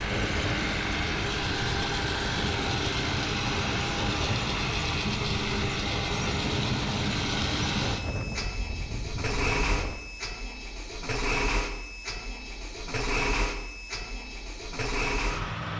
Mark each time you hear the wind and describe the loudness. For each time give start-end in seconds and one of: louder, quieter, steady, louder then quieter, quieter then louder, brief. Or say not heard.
0.0-9.9 steady.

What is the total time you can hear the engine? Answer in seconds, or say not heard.
16 s.